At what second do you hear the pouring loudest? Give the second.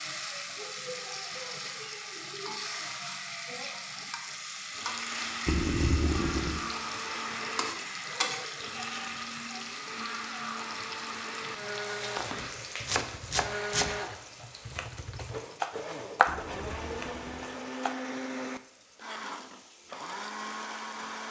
6 s.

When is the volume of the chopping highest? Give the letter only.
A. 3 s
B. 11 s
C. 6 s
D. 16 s
D.